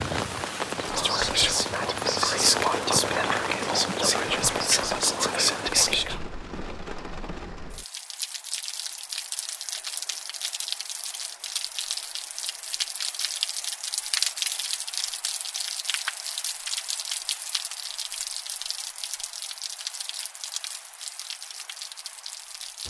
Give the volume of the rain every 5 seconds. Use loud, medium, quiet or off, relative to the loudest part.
loud, medium, loud, loud, medium.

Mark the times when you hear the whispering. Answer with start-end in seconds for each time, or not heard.
0.8-6.2.